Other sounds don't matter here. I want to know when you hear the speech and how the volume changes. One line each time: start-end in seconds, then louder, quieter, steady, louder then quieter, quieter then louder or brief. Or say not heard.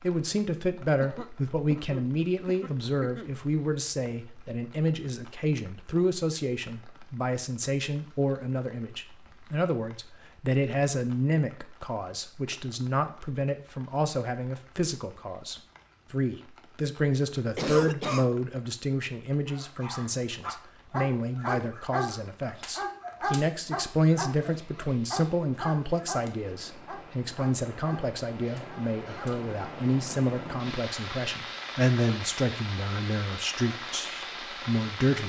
0.0-35.2 steady.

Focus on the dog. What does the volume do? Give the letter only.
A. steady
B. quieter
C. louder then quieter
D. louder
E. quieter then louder
B.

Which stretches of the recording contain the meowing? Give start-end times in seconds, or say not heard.
not heard.